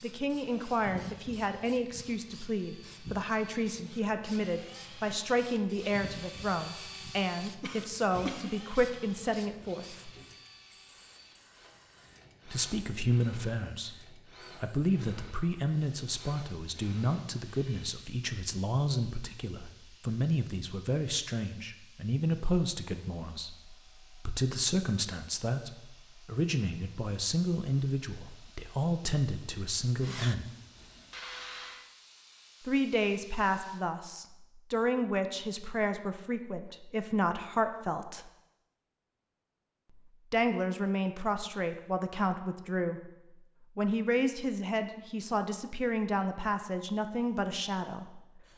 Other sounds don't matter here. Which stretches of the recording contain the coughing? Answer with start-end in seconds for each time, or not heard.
7.6-8.5.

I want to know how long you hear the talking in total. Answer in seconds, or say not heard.
41 s.